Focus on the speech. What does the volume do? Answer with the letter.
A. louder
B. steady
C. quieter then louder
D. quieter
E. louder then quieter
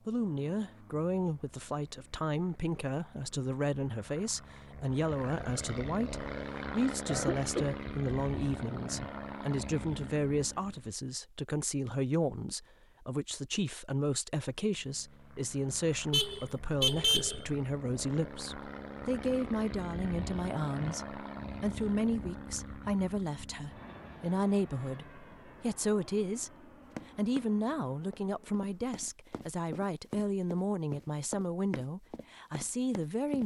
B.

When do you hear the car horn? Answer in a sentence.
You can hear the car horn from 16.1 to 17.6 s.